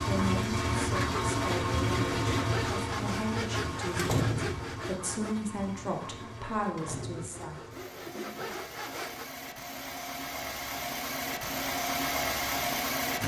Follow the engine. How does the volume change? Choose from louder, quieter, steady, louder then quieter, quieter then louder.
quieter then louder.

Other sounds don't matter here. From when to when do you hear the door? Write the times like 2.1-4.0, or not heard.
4.0-4.8, 6.8-7.5.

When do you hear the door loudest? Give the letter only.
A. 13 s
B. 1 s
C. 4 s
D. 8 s
C.